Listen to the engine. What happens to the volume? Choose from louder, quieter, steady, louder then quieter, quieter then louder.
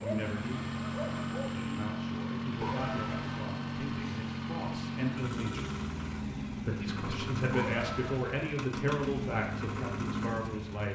steady.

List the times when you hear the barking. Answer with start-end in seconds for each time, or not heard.
0.0-1.7.